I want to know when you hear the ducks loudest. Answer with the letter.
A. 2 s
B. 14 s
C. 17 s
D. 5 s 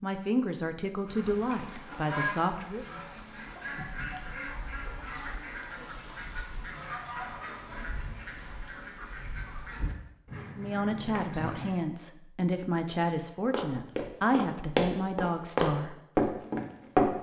A.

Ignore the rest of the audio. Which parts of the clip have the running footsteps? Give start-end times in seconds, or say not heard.
13.5-17.1.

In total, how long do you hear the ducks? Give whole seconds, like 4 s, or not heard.
11 s.